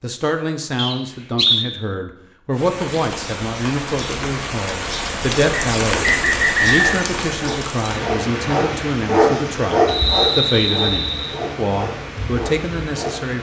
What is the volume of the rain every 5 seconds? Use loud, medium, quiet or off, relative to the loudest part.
loud, loud, medium.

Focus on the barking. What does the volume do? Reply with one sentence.
The loudness of the barking goes up, then down.